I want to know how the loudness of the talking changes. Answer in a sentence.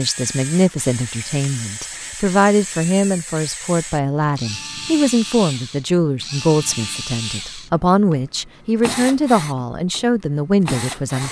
The loudness of the talking stays about the same.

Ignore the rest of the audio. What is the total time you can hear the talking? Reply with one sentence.
You can hear the talking for 11 seconds altogether.